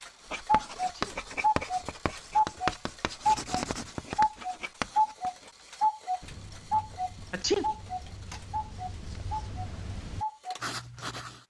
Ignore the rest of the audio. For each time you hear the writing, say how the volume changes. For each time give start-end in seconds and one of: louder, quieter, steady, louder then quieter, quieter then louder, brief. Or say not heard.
0.2-11.4 quieter then louder.